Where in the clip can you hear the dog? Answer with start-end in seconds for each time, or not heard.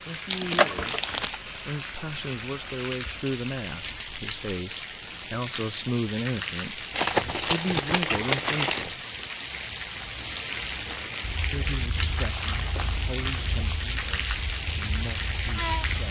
not heard.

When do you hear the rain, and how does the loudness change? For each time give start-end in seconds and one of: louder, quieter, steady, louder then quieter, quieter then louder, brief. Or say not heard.
0.0-16.0 steady.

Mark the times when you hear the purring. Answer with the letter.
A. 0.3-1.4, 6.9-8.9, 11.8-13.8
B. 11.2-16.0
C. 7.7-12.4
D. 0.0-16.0
B.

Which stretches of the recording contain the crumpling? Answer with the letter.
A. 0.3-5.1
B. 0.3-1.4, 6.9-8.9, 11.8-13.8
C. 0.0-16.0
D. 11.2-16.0
B.